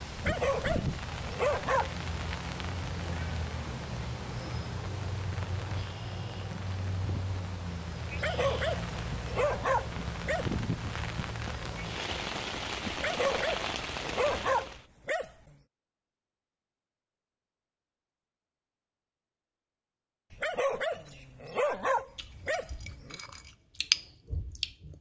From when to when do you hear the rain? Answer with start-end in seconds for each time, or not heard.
0.0-14.8.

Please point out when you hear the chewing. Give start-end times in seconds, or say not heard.
22.1-24.9.